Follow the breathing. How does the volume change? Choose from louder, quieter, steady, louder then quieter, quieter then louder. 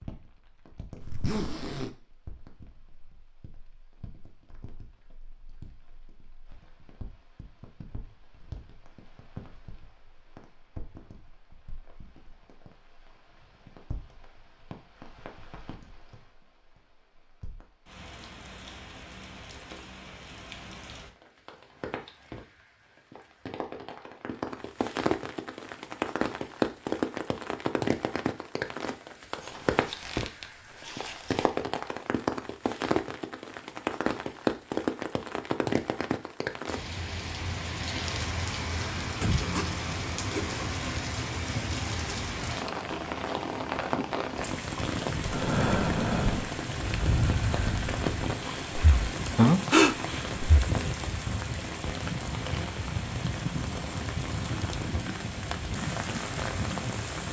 quieter then louder.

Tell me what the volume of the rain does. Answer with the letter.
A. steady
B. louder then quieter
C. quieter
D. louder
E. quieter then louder
D.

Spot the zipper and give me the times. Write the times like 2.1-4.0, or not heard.
1.0-1.9, 29.4-31.5, 39.2-40.8.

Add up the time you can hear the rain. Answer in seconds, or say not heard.
57 s.